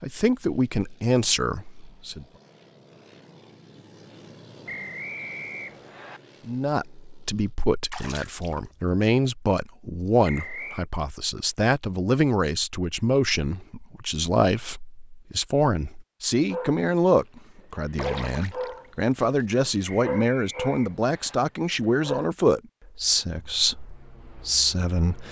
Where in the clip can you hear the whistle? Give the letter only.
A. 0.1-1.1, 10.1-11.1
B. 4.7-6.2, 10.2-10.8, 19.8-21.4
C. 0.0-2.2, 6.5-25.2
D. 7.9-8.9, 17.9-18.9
B.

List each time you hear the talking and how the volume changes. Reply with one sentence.
The talking can be heard briefly from 0.0 to 2.2 s; and from 6.5 to 25.2 s, at a steady volume.